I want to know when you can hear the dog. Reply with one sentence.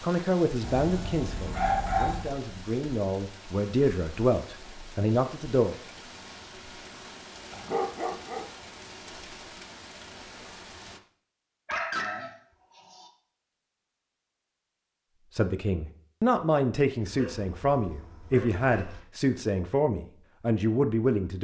The dog can be heard from 0.6 to 2.4 s, from 7.5 to 8.4 s, from 11.7 to 13.1 s and from 17.0 to 19.0 s.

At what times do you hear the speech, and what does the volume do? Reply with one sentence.
You can hear the speech from 0.0 to 5.8 s, getting quieter then louder; and from 15.3 to 21.3 s, at a steady volume.